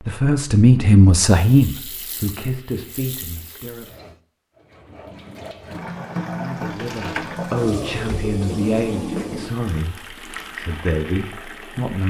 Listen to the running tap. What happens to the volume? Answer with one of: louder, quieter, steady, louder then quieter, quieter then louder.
louder then quieter.